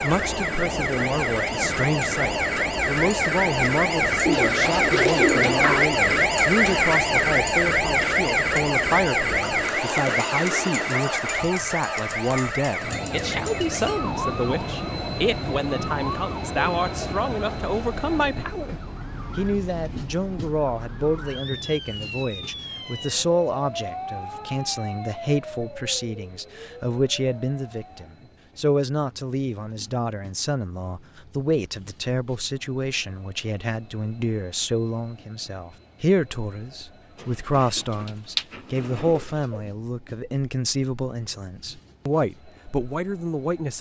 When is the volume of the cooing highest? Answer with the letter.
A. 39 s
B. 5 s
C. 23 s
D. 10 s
B.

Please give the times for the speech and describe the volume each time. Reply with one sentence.
You can hear the speech from 0.0 to 18.8 s, at a steady volume; and from 19.4 to 43.7 s, at a steady volume.